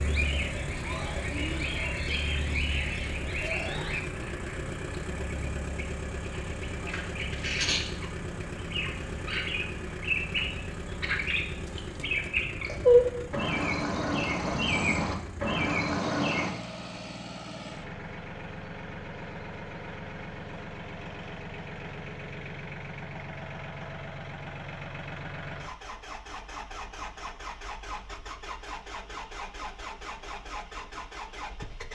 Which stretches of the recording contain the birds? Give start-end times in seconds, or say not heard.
0.0-16.5.